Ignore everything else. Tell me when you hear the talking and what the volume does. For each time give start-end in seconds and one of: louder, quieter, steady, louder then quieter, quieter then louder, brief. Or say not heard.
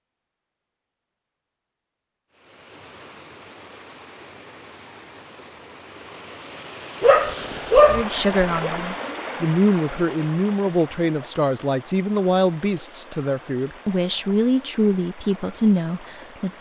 7.8-16.5 steady.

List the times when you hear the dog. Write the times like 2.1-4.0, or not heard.
7.0-8.7.